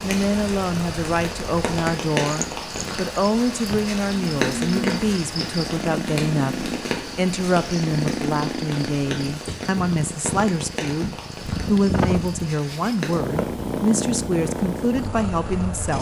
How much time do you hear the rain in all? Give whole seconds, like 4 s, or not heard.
13 s.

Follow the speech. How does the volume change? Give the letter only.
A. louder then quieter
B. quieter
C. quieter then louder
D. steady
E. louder
D.